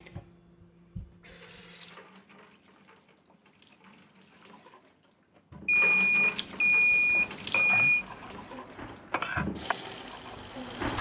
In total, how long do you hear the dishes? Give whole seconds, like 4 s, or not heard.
4 s.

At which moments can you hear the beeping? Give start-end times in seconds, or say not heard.
5.7-8.1.